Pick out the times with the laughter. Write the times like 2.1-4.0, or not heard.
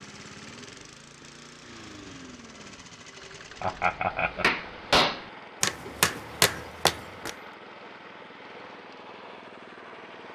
3.6-4.5.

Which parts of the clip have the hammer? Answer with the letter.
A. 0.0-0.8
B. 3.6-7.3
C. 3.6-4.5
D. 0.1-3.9
B.